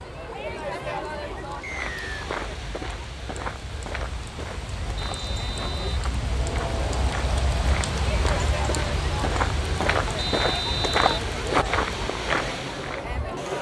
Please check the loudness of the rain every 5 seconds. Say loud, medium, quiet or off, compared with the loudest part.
medium, loud, medium.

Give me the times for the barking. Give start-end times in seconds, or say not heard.
not heard.